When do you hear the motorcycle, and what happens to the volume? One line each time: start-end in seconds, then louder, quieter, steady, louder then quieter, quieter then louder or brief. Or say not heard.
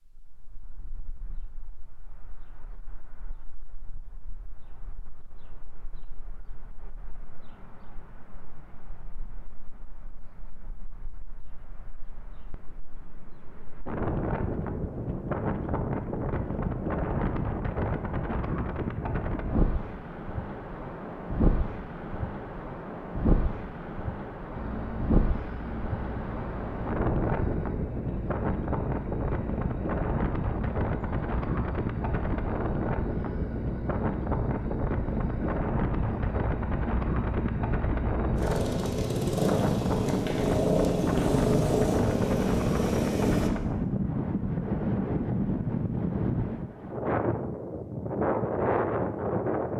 24.5-43.5 louder.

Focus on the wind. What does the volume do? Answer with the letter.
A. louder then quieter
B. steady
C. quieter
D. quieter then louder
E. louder
E.